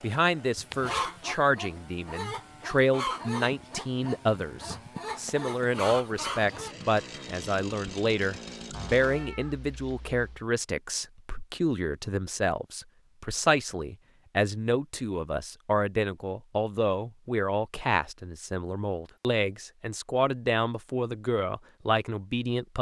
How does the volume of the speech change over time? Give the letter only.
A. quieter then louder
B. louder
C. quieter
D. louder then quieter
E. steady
E.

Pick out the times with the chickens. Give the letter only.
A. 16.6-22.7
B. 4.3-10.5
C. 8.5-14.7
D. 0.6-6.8
D.